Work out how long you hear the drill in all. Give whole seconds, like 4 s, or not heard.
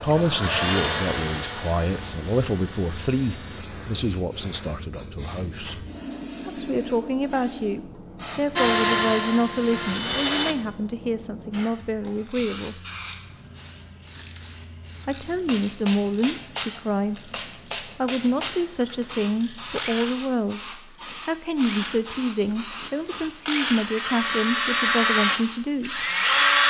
14 s.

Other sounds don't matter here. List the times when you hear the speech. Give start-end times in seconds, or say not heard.
0.0-5.8, 6.5-12.8, 15.1-17.3, 17.9-26.1.